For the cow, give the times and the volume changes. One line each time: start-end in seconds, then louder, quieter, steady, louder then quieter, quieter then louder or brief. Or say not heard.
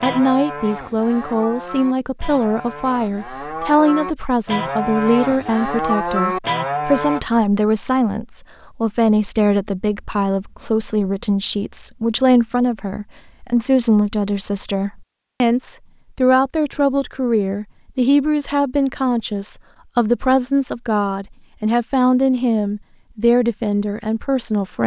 0.0-7.2 louder.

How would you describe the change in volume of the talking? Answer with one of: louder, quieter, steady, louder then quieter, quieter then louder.
steady.